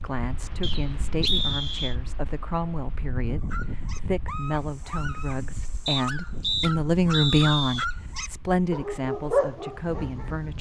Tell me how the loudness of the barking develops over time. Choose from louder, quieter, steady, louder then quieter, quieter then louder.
louder.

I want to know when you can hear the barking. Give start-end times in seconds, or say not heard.
3.4-10.5.